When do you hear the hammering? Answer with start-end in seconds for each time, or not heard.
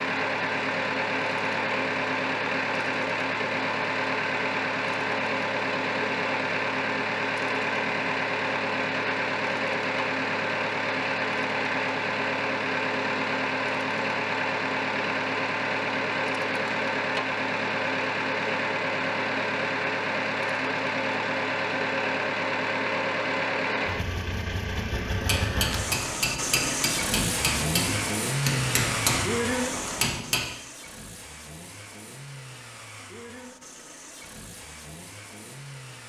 25.1-30.4.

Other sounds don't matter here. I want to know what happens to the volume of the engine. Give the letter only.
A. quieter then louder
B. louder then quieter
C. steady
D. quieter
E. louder
D.